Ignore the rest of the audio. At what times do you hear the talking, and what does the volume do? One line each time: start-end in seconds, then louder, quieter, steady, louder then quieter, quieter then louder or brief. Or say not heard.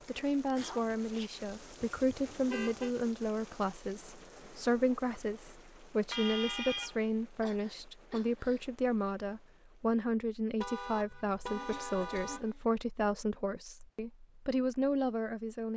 0.1-15.7 steady.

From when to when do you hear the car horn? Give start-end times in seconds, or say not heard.
1.8-2.9, 6.1-7.0, 10.6-12.6.